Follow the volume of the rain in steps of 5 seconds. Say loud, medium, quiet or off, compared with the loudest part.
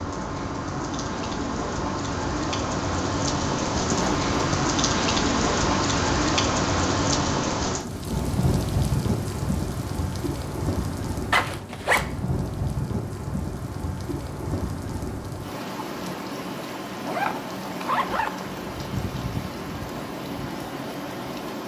loud, loud, medium, medium, medium.